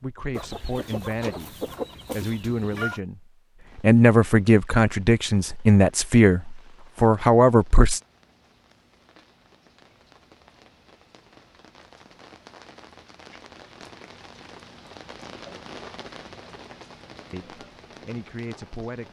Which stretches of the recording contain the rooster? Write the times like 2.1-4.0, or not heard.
0.3-3.0.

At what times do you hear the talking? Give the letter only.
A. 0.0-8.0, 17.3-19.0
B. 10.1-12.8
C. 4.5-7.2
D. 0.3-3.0
A.